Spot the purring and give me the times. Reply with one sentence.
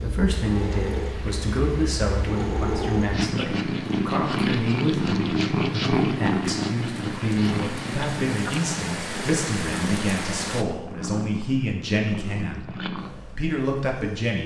You can hear the purring from 0.0 to 14.4 s.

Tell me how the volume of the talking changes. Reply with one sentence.
The loudness of the talking stays about the same.